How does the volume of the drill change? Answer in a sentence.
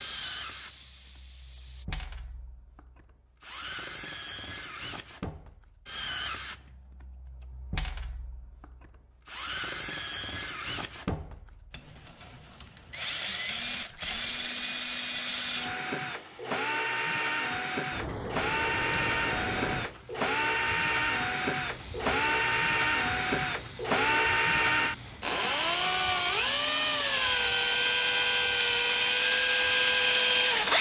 The loudness of the drill goes up.